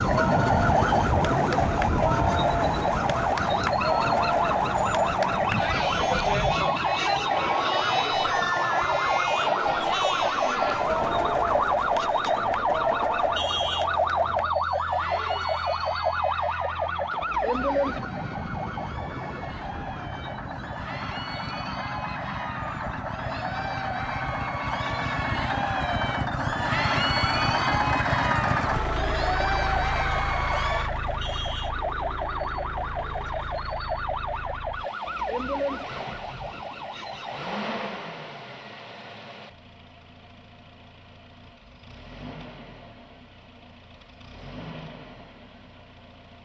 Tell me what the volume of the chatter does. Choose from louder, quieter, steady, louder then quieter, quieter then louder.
quieter then louder.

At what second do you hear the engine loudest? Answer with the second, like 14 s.
28 s.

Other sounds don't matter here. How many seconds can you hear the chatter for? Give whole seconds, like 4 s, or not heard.
31 s.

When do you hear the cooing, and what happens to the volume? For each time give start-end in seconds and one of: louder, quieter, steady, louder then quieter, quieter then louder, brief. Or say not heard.
not heard.